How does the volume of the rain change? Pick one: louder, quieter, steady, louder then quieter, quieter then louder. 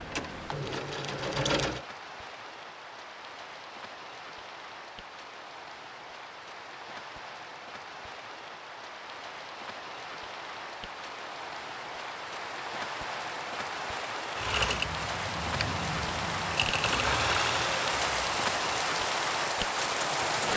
louder.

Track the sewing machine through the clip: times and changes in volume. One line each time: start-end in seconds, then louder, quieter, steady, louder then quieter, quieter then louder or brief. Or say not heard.
0.0-1.8 brief
14.3-20.5 louder then quieter.